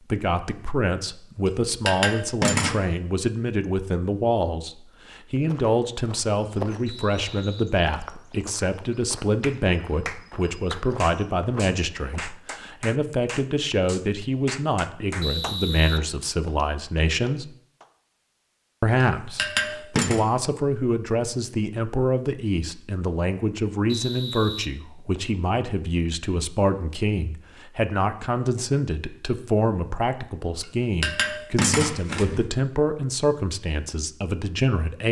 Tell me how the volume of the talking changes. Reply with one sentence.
The loudness of the talking stays about the same.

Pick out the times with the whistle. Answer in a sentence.
The whistle can be heard from 6.8 to 8.3 s, from 15.2 to 16.7 s and from 23.9 to 25.4 s.